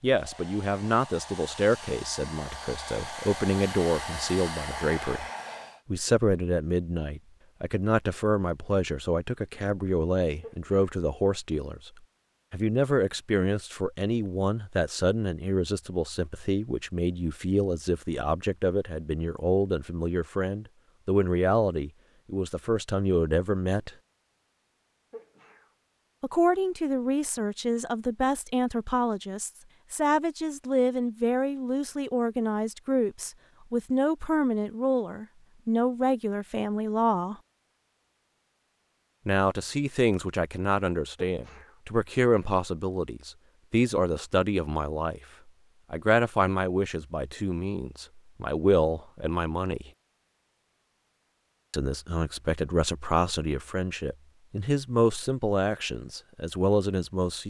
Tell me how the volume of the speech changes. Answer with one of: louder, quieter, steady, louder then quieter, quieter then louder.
steady.